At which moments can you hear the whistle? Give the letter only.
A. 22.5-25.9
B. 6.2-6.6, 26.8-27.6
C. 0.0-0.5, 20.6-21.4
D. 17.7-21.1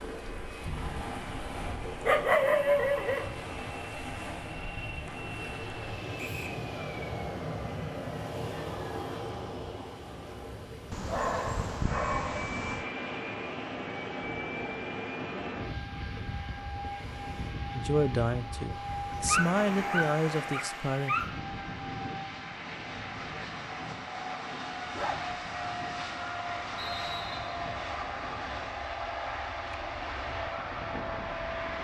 B.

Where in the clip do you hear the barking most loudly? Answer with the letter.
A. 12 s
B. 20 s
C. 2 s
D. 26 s
C.